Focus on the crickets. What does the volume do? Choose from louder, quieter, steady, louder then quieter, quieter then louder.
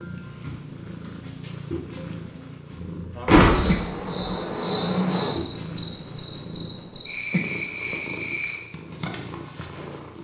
steady.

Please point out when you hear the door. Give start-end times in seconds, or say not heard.
3.2-4.3.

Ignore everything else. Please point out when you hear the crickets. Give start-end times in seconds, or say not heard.
0.0-8.6.